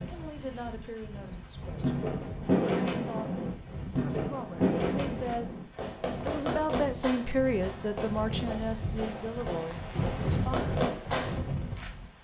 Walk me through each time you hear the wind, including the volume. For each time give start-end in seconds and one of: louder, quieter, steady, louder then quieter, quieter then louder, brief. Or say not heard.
0.0-12.1 louder.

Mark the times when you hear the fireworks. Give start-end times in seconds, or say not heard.
1.8-11.4.